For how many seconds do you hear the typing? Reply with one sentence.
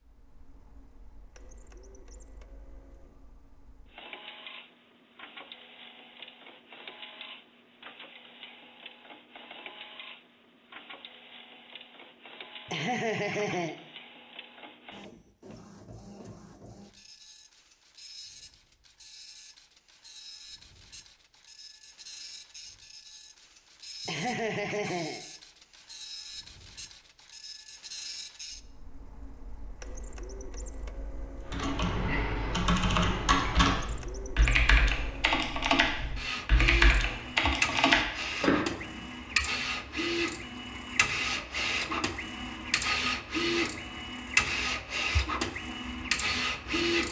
You can hear the typing for 7 seconds altogether.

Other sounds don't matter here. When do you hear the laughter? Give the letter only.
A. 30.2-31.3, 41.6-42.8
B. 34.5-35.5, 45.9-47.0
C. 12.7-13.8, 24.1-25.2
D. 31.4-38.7
C.